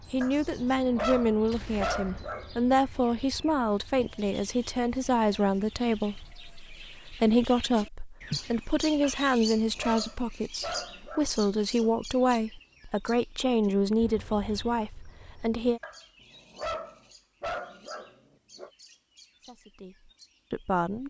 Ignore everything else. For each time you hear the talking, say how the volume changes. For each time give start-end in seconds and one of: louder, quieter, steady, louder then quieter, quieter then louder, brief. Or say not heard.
0.1-15.8 steady
19.4-21.0 brief.